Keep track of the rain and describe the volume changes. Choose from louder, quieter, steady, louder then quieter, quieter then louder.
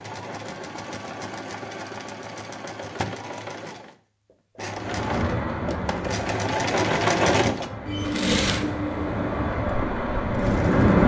quieter then louder.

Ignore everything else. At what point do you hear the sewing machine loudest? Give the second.
7 s.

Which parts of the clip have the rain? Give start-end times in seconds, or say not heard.
4.7-11.0.